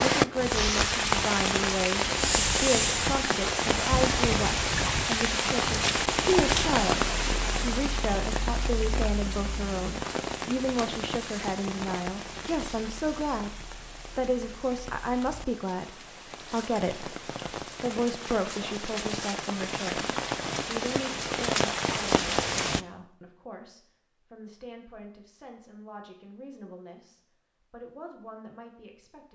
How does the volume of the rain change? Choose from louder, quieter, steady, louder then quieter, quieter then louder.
quieter then louder.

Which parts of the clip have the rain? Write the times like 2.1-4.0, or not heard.
0.0-22.9.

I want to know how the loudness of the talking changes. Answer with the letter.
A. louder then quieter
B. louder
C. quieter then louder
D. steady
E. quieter
E.